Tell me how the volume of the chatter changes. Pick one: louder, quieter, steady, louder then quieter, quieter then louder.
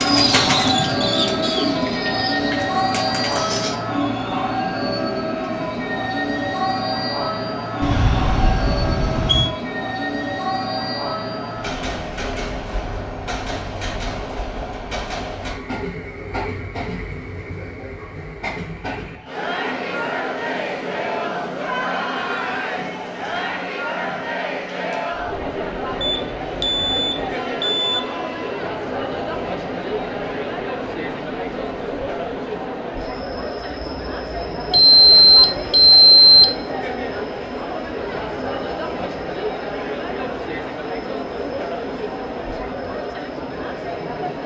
steady.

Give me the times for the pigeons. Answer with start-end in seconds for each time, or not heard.
0.0-3.8.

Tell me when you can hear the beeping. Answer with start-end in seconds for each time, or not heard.
7.8-9.5, 26.0-28.0, 34.7-36.5.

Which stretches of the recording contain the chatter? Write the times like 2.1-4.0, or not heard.
19.1-44.4.